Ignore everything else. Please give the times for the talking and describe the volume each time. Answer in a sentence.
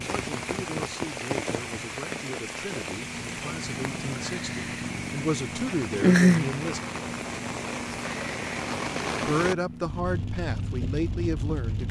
The talking can be heard from 0.0 to 6.8 s, getting louder; and briefly from 9.2 to 11.8 s.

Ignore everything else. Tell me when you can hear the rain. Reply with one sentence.
You can hear the rain from 0.0 to 11.8 s.